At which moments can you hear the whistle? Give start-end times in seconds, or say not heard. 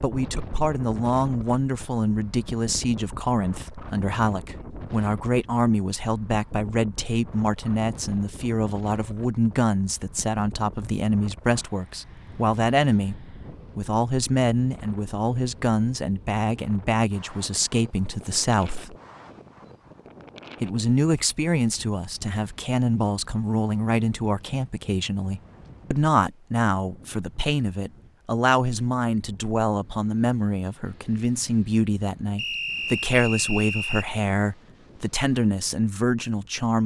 32.4-34.1.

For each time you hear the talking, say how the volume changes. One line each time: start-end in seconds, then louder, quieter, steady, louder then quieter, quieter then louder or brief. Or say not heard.
0.0-18.9 steady
20.6-36.8 steady.